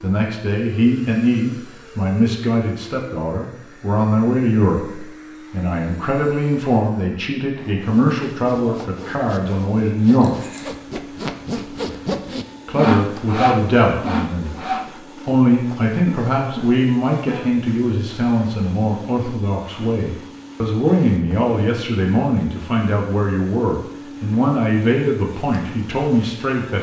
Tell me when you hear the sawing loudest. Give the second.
13 s.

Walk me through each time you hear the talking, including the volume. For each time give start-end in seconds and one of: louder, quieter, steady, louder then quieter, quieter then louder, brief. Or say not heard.
0.0-10.3 steady
12.7-26.7 steady.